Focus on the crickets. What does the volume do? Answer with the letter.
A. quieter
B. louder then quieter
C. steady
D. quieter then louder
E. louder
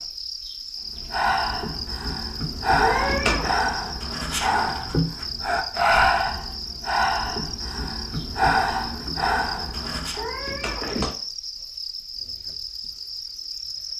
C.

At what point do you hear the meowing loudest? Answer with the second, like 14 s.
3 s.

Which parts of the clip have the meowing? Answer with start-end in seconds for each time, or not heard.
2.8-3.5, 10.2-11.2.